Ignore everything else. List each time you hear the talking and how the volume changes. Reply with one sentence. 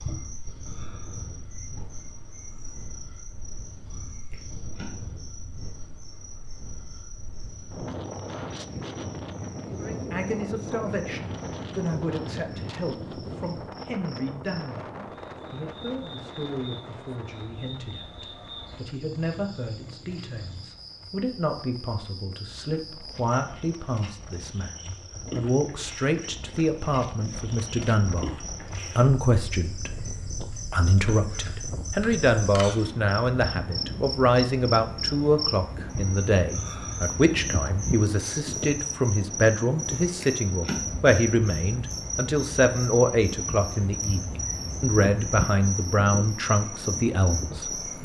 You can hear the talking from 9.7 to 47.9 s, getting louder.